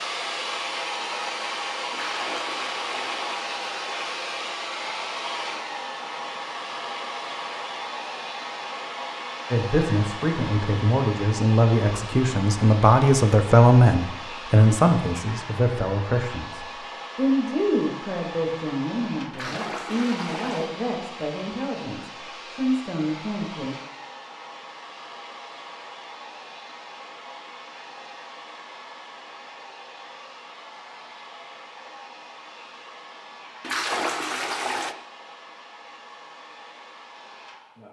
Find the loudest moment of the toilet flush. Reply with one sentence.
The volume of the toilet flush peaks at 34 seconds.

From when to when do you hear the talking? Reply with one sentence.
You can hear the talking from 9.5 to 23.8 s.